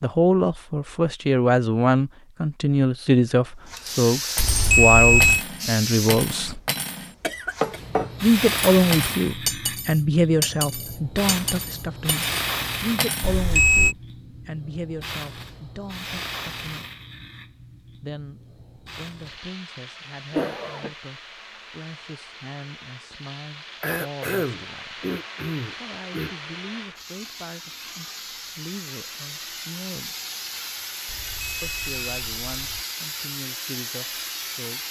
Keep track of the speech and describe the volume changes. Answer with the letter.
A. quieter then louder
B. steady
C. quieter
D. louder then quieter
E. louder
C.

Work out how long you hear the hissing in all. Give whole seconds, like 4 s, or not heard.
31 s.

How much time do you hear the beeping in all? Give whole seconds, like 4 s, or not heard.
4 s.